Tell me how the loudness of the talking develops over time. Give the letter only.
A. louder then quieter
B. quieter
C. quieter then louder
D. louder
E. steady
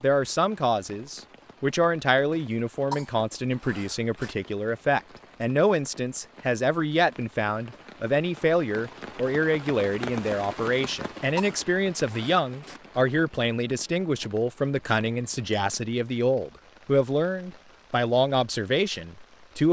E.